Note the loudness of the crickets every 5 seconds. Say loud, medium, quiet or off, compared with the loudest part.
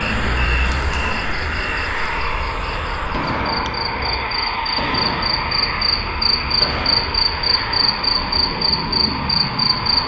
medium, loud.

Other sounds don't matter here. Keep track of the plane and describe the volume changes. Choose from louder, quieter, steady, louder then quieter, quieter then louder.
steady.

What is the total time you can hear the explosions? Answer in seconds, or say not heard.
4 s.